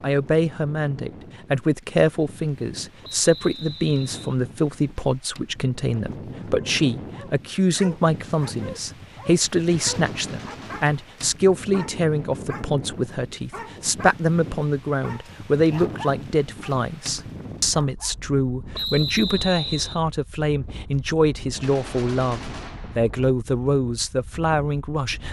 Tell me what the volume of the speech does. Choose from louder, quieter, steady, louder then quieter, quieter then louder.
steady.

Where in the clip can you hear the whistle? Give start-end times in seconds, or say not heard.
3.0-4.3, 18.7-20.0.